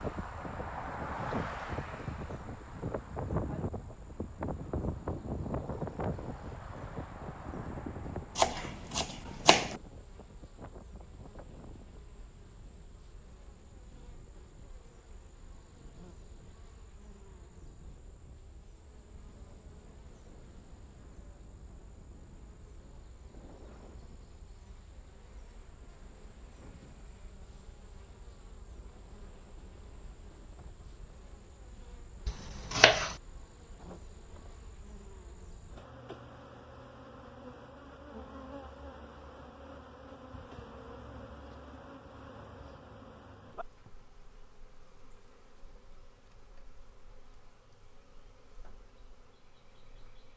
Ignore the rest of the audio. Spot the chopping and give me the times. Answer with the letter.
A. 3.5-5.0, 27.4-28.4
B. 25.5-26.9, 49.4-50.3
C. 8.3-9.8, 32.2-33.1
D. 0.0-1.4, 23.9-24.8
C.